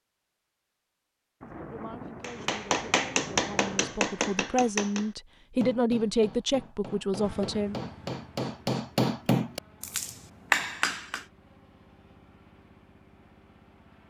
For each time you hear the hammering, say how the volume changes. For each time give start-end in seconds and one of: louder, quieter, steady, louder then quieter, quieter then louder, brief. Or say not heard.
2.2-11.2 quieter then louder.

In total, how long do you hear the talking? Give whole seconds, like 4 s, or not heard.
6 s.